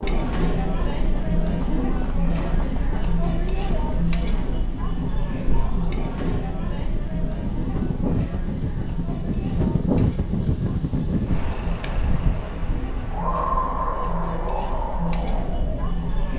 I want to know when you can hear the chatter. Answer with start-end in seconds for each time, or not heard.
0.0-16.3.